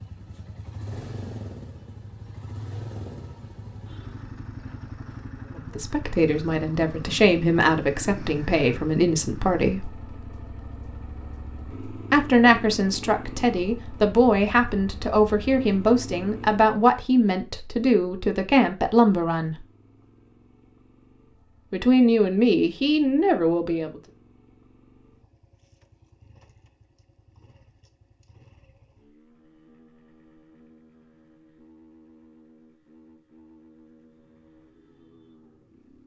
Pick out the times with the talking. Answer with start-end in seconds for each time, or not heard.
5.7-9.9, 12.1-19.6, 21.7-24.0.